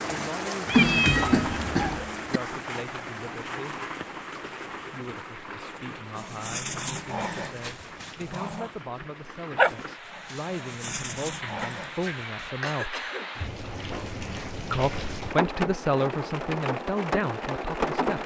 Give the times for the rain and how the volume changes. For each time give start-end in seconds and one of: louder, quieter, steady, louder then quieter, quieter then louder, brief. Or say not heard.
0.0-18.2 quieter then louder.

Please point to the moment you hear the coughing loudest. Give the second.
1 s.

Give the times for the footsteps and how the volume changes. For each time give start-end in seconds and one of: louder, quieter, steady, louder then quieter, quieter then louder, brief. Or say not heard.
not heard.